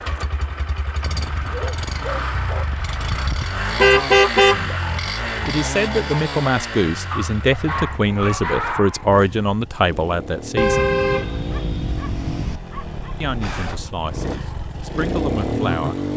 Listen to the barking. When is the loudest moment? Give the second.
9 s.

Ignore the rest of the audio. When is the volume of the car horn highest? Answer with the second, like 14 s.
4 s.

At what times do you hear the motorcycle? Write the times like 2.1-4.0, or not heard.
0.0-16.1.